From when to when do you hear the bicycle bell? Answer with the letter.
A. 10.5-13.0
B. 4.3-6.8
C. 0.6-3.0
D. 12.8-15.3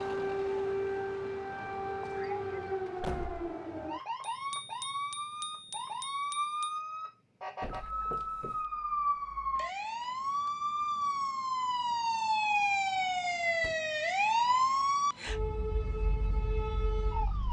B.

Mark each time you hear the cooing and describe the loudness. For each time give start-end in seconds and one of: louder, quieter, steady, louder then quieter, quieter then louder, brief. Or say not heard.
not heard.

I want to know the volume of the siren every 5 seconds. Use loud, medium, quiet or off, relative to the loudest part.
medium, medium, loud, medium.